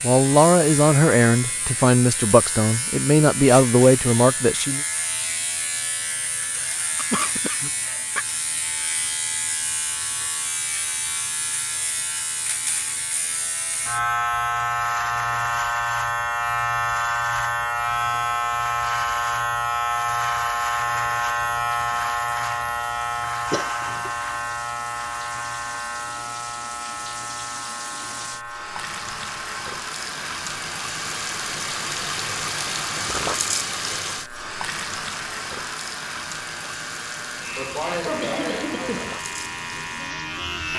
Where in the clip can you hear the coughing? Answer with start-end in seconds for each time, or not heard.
7.0-8.2, 23.5-24.1, 37.5-39.1.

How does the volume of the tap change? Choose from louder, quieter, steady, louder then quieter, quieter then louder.
louder then quieter.